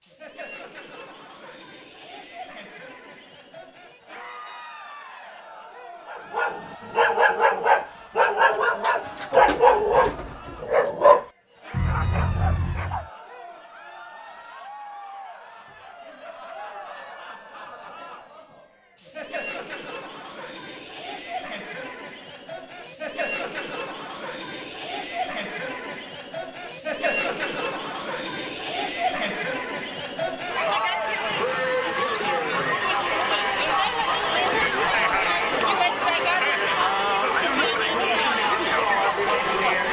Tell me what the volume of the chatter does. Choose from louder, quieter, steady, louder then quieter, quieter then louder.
louder.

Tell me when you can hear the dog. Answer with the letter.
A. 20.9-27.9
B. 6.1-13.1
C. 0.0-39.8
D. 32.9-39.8
B.